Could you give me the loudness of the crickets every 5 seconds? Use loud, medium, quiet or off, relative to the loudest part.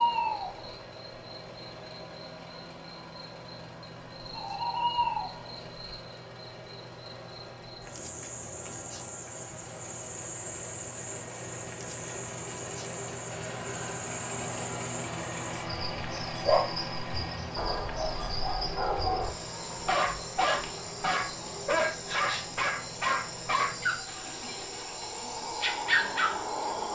loud, medium, medium, medium, medium, loud.